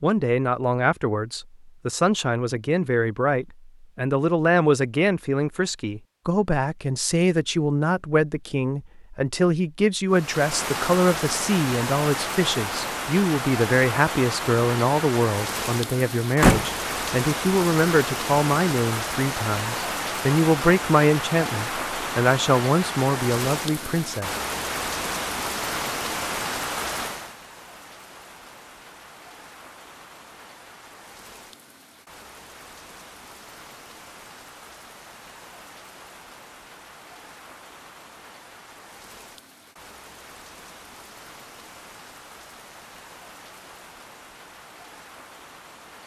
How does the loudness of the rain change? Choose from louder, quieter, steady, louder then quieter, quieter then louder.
quieter.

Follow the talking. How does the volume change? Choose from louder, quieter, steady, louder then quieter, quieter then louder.
steady.